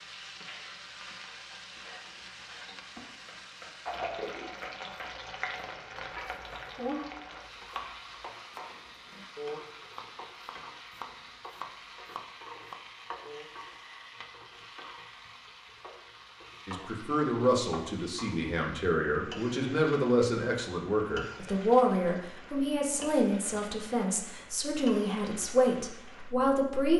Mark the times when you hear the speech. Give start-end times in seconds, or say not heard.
16.6-26.9.